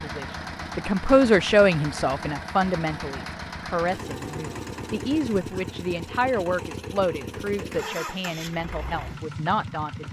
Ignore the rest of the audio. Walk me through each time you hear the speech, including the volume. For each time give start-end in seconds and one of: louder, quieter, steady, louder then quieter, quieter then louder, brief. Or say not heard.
0.0-10.0 quieter.